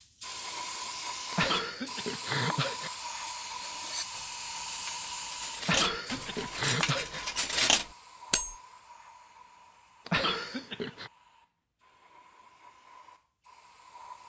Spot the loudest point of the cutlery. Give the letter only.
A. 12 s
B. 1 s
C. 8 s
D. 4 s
C.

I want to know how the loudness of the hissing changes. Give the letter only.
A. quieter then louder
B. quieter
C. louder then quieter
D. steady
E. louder
B.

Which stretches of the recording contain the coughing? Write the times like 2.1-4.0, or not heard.
1.3-2.9, 5.6-7.2, 10.1-11.1.